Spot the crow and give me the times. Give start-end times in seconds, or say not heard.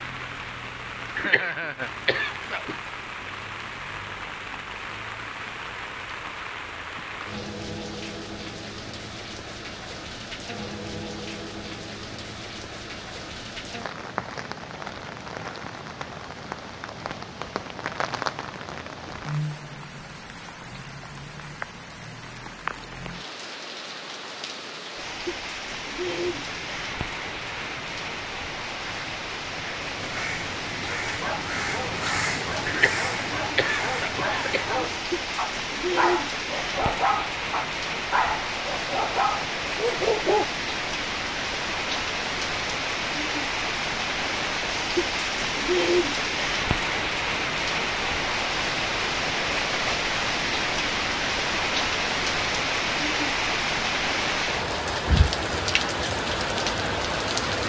26.1-35.0.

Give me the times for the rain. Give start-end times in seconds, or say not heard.
0.0-57.6.